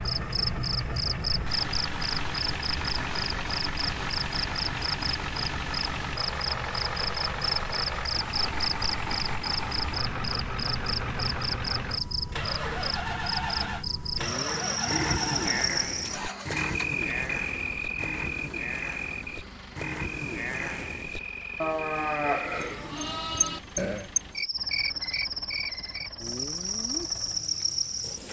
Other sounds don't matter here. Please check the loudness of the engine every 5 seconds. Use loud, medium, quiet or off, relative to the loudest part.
loud, loud, loud, medium, quiet, quiet.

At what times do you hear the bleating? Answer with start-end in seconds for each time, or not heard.
14.8-24.1.